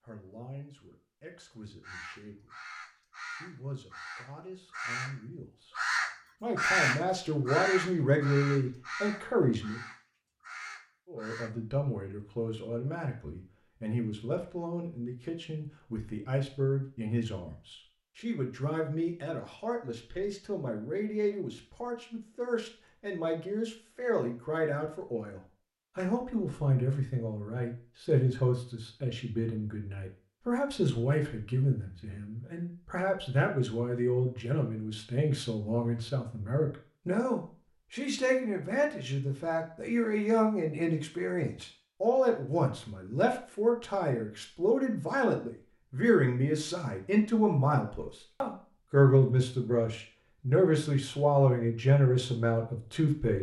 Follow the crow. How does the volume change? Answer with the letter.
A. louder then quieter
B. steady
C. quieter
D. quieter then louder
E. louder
A.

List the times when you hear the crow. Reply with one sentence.
You can hear the crow from 1.8 to 11.6 s.